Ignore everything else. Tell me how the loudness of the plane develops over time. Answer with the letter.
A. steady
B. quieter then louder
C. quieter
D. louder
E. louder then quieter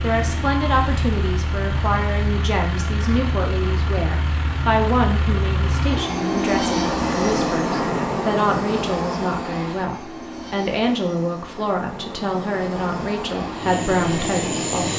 E.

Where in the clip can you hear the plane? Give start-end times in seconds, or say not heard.
0.0-14.9.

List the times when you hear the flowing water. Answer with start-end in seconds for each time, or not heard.
not heard.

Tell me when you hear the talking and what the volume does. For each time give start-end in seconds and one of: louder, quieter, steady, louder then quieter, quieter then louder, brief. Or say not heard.
0.0-14.9 steady.